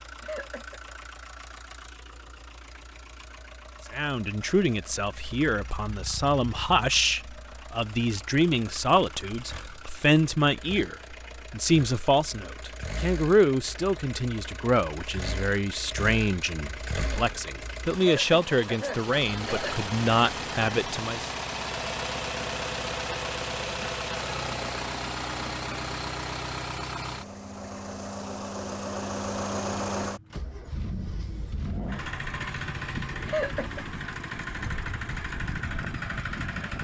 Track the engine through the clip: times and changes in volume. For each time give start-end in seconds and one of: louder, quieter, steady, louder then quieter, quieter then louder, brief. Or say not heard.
0.0-36.7 louder.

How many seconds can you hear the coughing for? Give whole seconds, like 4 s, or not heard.
3 s.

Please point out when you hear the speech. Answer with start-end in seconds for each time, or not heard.
3.9-21.3.